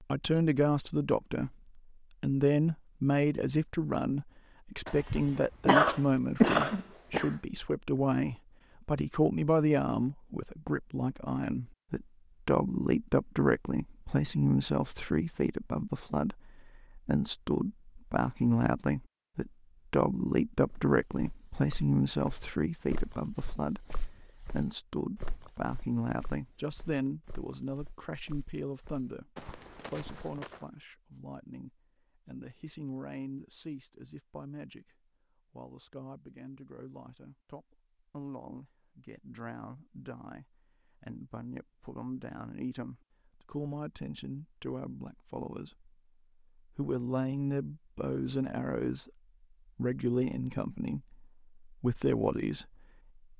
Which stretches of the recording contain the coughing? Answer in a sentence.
You can hear the coughing from 4.8 to 7.3 s.